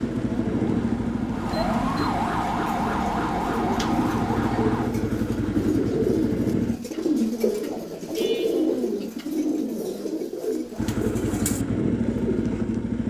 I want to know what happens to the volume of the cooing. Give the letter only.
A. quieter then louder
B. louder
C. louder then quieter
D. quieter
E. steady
C.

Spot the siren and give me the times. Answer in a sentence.
The siren can be heard from 0.0 to 4.9 s.